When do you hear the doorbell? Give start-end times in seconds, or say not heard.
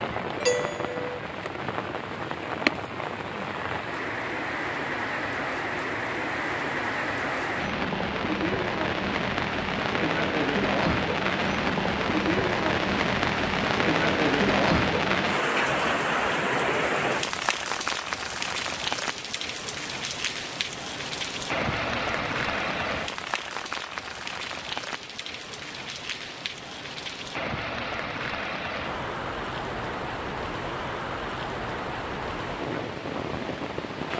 0.4-1.1.